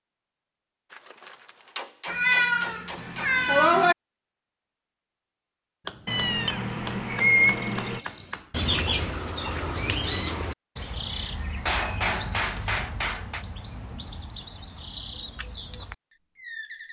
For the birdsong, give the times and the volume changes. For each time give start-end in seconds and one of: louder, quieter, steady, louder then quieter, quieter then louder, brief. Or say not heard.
7.1-16.8 quieter.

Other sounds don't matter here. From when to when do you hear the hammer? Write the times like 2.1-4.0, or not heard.
0.9-3.3, 5.8-8.5, 11.7-13.4.